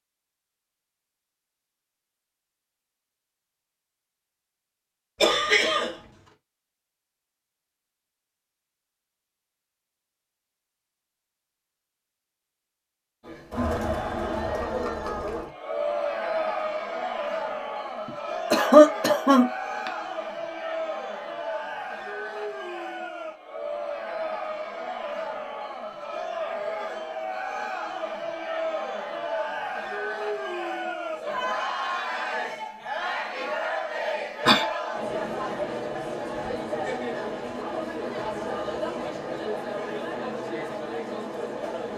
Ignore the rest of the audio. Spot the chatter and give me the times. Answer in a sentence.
You can hear the chatter from 13.2 to 41.9 s.